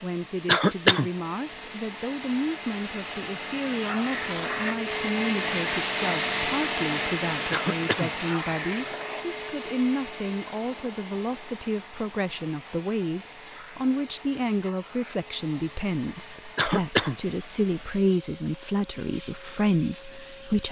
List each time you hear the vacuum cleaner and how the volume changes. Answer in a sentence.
You can hear the vacuum cleaner from 0.0 to 20.6 s, getting louder then quieter.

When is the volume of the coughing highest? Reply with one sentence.
The volume of the coughing peaks at 1 second.